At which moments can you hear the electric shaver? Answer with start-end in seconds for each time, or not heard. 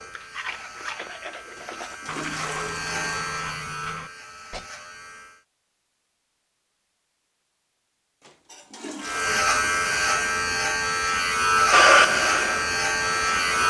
0.0-5.5, 9.0-13.6.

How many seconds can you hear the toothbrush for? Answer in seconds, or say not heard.
5 s.